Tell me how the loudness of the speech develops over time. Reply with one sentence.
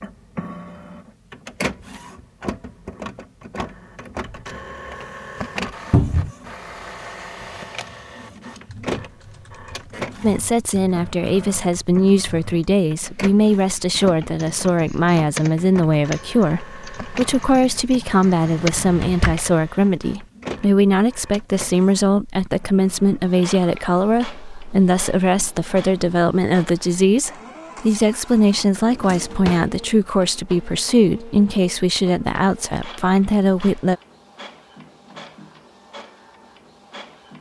The volume of the speech stays about the same.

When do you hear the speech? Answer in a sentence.
The speech can be heard from 10.2 to 34.0 s.